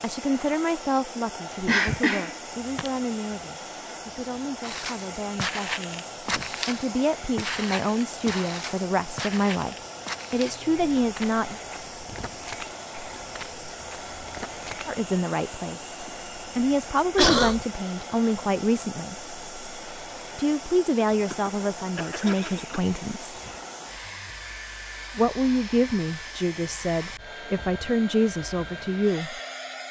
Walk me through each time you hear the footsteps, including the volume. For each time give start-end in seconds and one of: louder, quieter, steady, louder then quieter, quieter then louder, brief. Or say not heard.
4.6-14.9 quieter.